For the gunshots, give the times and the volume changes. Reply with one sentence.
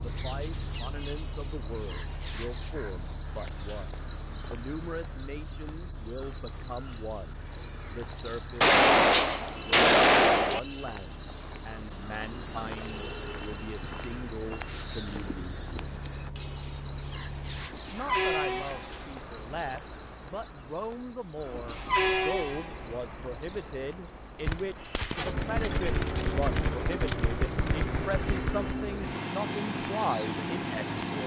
You can hear the gunshots briefly from 8.6 to 10.6 s; and from 24.4 to 28.7 s, at a steady volume.